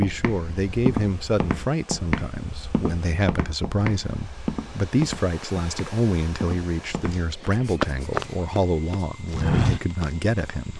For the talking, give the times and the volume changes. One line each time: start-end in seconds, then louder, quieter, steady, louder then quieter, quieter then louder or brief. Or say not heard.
0.0-10.7 steady.